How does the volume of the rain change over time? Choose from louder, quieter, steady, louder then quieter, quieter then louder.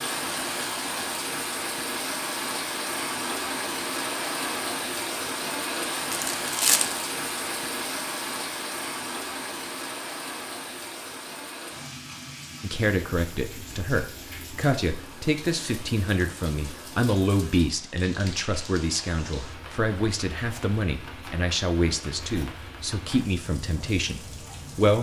quieter.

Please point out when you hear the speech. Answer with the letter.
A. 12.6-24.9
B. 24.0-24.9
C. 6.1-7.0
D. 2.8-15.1
A.